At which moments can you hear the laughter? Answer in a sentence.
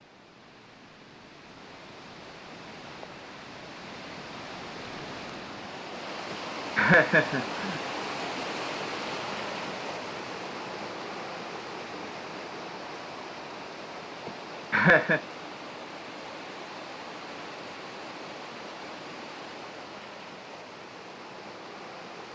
The laughter can be heard from 6.3 to 7.8 s and from 14.2 to 15.2 s.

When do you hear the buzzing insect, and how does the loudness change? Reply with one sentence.
The buzzing insect can't be heard in this clip.